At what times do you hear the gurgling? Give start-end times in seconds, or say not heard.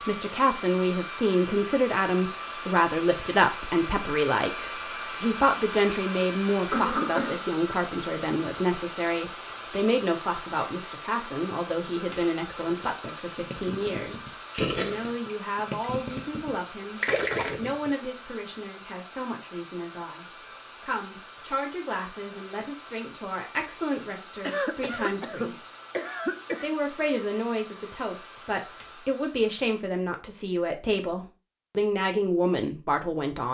12.6-18.1.